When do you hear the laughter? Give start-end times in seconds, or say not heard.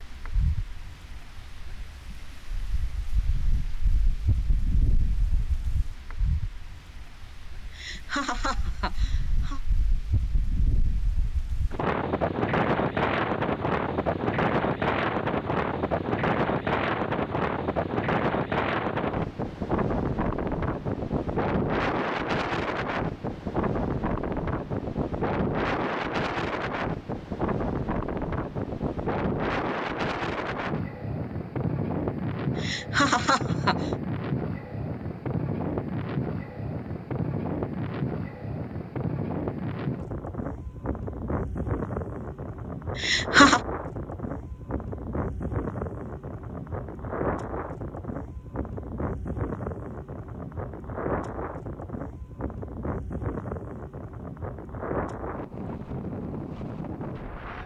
7.8-9.6, 32.5-33.9, 43.0-43.6.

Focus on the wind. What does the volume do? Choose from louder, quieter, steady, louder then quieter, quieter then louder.
louder then quieter.